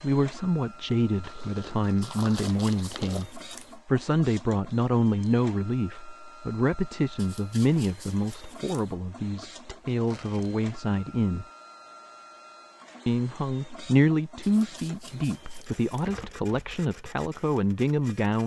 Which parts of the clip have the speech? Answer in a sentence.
You can hear the speech from 0.0 to 11.4 s and from 13.1 to 18.4 s.